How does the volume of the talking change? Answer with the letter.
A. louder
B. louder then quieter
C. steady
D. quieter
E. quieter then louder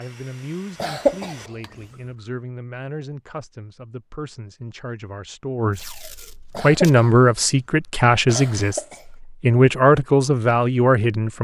A.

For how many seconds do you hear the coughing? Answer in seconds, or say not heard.
2 s.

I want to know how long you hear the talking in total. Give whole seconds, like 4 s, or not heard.
11 s.